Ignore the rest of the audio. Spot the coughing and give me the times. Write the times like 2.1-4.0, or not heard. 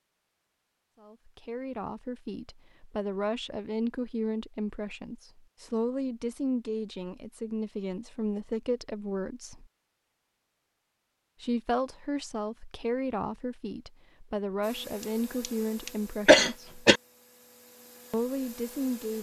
15.0-17.0.